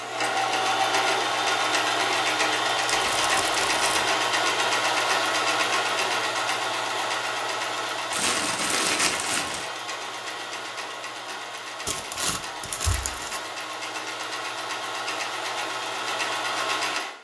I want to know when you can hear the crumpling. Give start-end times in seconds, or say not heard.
2.9-3.9, 8.1-9.7, 11.8-13.4.